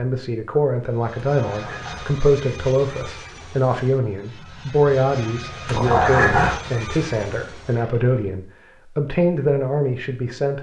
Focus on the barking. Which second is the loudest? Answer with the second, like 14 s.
6 s.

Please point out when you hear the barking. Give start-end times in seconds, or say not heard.
1.2-2.1, 5.7-6.6.